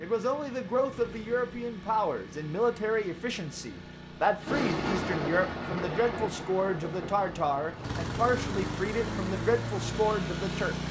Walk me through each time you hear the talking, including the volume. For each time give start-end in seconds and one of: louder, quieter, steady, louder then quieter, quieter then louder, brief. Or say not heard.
0.0-10.8 steady.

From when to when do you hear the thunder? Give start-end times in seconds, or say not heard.
4.4-8.1.